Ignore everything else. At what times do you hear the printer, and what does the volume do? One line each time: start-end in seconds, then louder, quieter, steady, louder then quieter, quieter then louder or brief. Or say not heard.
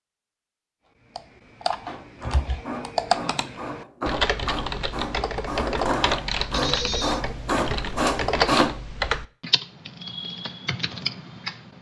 1.9-8.7 louder.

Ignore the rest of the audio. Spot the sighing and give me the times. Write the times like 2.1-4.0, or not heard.
3.1-3.8, 6.5-7.2.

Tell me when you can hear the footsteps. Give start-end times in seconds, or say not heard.
not heard.